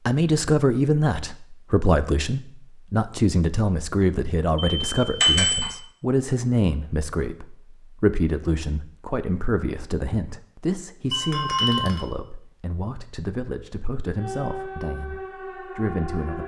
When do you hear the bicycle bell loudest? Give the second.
5 s.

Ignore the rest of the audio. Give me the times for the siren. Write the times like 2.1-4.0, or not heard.
14.2-16.4.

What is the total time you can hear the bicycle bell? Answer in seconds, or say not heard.
2 s.